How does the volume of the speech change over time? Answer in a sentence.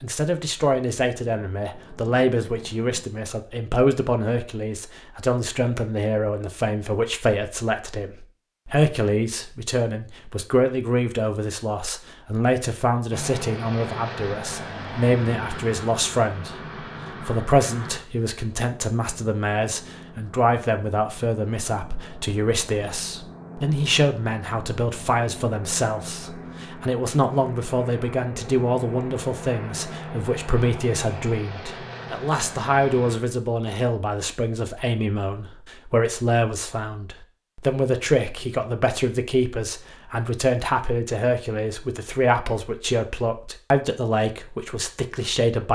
The loudness of the speech stays about the same.